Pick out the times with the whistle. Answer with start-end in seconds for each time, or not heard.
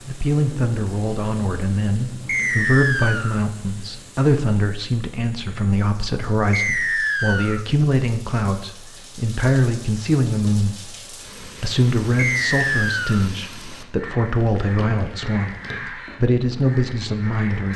2.2-3.4, 6.5-7.7, 12.2-13.3.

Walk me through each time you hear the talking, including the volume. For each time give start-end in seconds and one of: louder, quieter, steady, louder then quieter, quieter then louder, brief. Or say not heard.
0.1-17.7 steady.